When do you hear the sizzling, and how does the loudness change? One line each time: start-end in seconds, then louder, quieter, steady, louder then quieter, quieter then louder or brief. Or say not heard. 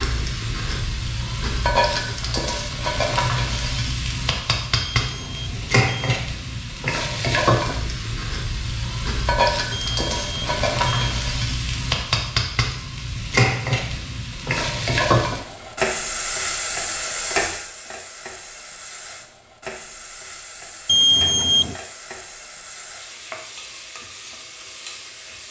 0.0-25.4 quieter.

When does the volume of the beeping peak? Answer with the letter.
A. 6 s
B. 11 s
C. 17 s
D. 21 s
D.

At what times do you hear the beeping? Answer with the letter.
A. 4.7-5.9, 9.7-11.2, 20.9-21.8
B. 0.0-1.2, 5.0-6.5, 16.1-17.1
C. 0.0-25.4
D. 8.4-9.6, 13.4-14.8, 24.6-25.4
A.